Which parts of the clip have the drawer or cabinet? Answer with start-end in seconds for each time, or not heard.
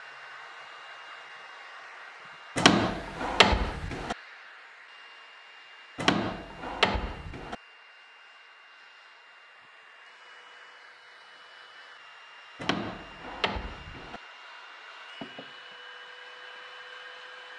2.5-4.2, 6.0-7.5, 12.6-14.2.